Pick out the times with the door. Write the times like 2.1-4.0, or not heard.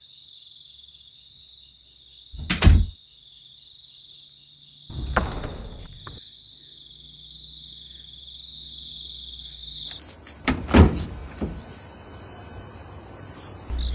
2.4-2.9, 4.9-6.1, 10.4-11.6.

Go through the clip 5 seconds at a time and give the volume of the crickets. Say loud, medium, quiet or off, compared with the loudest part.
quiet, medium, loud.